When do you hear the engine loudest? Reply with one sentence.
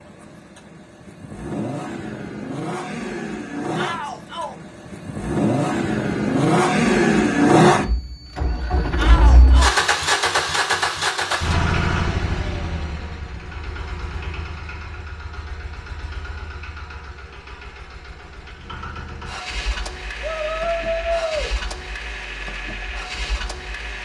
The loudest moment of the engine is at 7 seconds.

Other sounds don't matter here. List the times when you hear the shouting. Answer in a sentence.
You can hear the shouting from 3.8 to 4.5 s, from 8.9 to 9.8 s and from 20.2 to 21.6 s.